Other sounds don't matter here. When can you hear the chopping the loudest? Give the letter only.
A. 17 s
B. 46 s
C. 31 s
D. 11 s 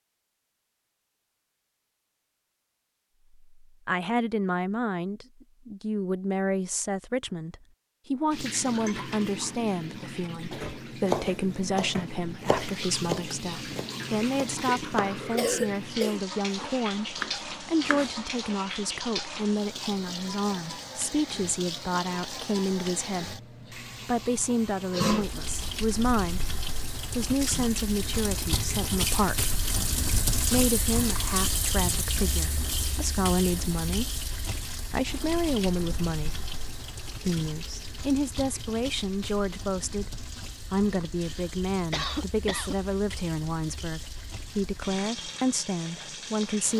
D.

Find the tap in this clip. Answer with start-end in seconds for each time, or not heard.
8.3-46.7.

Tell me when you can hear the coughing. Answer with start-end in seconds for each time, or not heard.
15.3-16.2, 41.2-42.8.